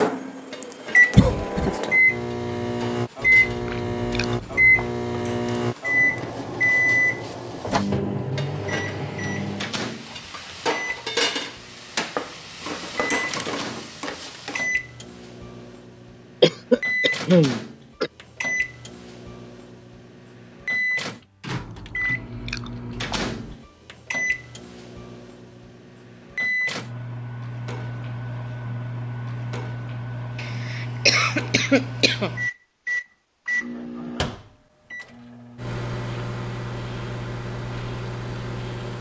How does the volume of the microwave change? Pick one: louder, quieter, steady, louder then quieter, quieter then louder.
quieter.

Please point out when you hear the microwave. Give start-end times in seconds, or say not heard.
0.0-38.9.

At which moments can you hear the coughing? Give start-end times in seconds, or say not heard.
1.1-1.8, 16.4-18.1, 30.4-32.4.